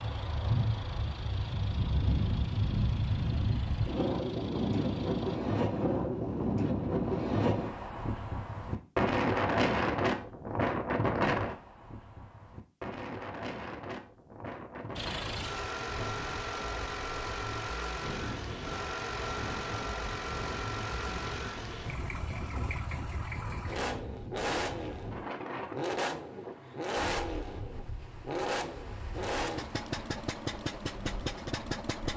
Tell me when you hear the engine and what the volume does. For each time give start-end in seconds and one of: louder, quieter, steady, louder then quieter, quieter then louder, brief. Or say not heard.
0.0-5.4 steady
14.9-32.1 steady.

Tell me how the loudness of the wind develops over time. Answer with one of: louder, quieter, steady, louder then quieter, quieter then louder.
quieter.